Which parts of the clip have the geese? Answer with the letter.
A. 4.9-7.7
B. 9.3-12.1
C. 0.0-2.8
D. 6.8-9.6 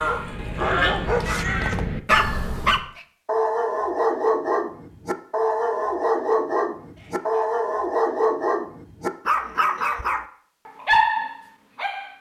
C.